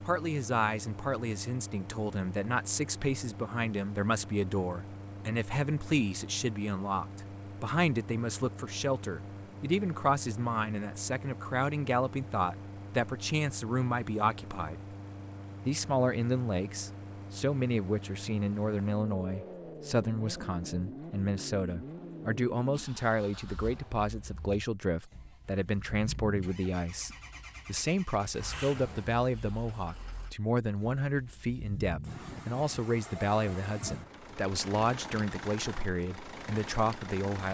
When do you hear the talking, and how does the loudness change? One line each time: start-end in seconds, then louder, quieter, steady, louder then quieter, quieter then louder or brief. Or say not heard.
0.0-14.8 steady
15.6-37.4 steady.